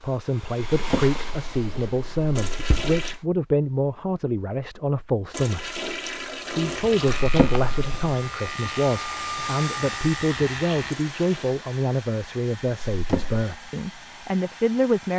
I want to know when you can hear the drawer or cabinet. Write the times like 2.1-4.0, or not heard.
0.7-3.0, 7.2-8.2, 12.9-13.4.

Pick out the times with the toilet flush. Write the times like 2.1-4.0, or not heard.
2.4-3.2, 5.3-7.2, 10.8-11.6.